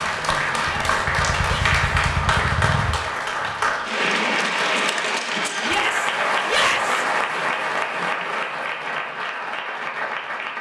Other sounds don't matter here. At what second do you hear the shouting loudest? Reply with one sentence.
The loudest moment of the shouting is at 7 seconds.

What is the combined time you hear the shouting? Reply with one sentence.
The shouting can be heard for 3 seconds in total.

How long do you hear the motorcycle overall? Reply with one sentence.
The motorcycle can be heard for 3 seconds in total.